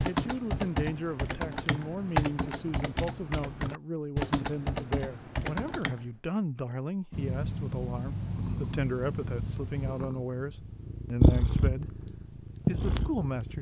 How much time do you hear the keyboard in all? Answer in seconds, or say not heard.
6 s.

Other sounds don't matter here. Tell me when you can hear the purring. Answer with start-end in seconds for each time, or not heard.
7.1-13.5.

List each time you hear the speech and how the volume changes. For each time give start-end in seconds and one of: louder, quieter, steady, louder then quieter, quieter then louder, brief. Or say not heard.
0.0-13.5 steady.